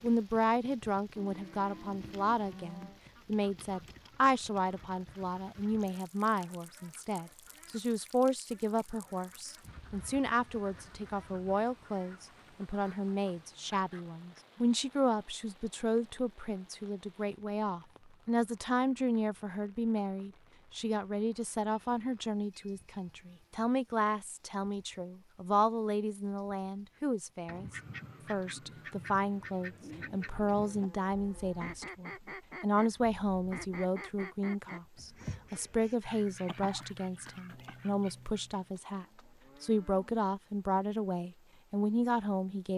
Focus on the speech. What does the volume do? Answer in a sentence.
The volume of the speech stays about the same.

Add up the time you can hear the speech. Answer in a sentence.
The speech can be heard for 42 seconds in total.